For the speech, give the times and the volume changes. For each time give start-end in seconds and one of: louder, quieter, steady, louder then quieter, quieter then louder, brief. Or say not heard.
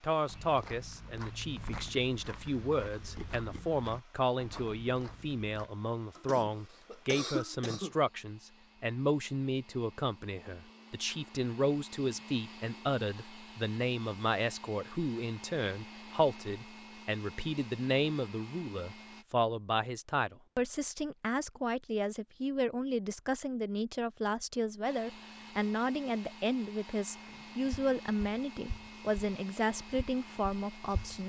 0.0-31.2 steady.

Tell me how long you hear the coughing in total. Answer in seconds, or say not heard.
2 s.